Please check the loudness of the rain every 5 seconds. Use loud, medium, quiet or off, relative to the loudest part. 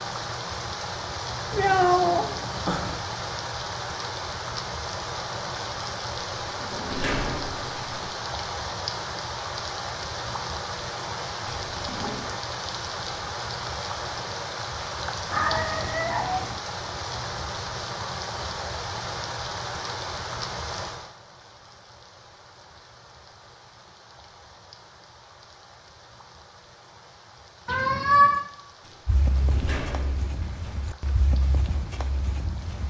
loud, loud, loud, loud, medium, quiet, quiet.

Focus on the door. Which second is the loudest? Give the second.
7 s.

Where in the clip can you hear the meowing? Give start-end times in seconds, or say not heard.
1.5-3.0, 15.3-16.6, 27.6-28.4.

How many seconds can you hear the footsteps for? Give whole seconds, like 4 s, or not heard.
4 s.